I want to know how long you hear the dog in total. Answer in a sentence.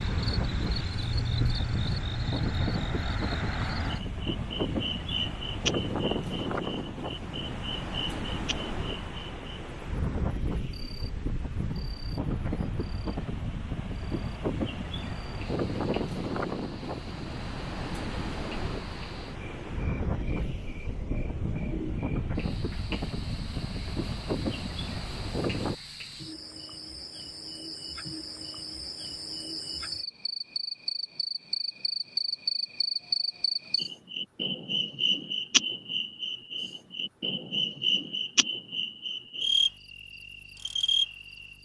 You can't hear the dog here.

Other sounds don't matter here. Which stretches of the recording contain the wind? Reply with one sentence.
The wind can be heard from 0.0 to 25.8 s.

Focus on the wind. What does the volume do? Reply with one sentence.
The volume of the wind stays about the same.